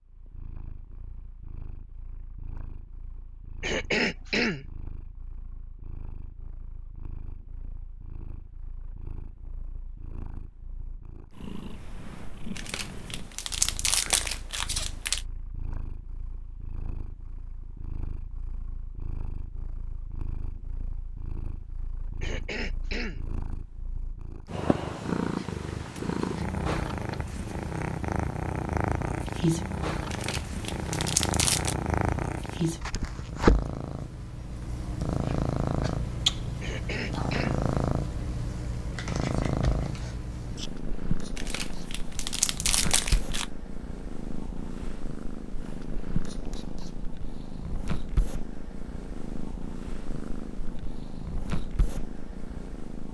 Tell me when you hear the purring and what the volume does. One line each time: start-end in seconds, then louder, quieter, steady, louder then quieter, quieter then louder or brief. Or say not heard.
0.0-53.1 louder then quieter.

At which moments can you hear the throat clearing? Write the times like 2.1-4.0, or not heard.
3.6-4.7, 22.2-23.2, 36.6-37.6.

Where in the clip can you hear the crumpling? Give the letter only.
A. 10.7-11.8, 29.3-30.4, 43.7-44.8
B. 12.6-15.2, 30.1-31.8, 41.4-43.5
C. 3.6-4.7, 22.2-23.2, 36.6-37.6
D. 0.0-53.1
B.